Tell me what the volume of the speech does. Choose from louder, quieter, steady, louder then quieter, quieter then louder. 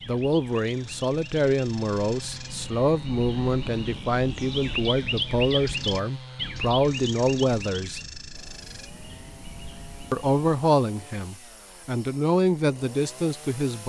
steady.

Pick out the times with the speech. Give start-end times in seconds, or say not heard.
0.1-8.0, 10.1-13.8.